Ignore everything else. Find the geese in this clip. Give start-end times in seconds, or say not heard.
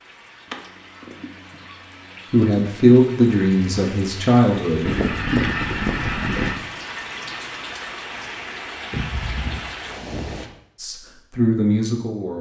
0.5-2.4, 4.8-6.6, 8.9-10.6.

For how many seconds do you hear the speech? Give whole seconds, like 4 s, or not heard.
5 s.